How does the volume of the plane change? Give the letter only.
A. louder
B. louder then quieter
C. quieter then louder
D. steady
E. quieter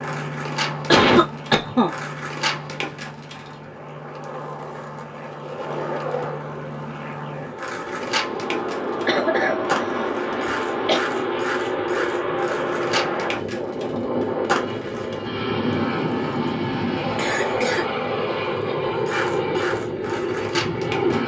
A.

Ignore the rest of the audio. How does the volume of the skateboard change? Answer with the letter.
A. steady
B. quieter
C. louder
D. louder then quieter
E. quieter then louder
A.